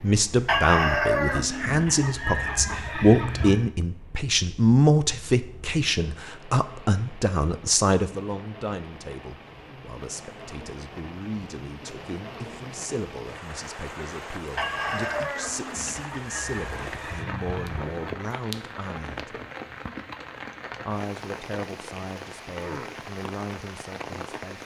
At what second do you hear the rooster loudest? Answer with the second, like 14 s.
1 s.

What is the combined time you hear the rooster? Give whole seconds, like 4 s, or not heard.
7 s.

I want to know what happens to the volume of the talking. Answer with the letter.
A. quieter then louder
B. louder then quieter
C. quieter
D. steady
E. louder
C.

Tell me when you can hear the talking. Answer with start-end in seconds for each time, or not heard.
0.0-19.4, 20.9-24.6.